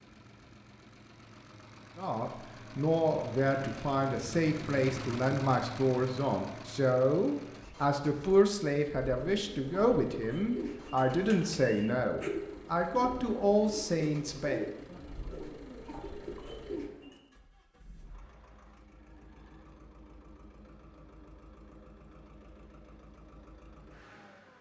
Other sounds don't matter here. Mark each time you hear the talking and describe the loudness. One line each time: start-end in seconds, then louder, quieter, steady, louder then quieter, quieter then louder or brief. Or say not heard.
1.9-14.7 steady.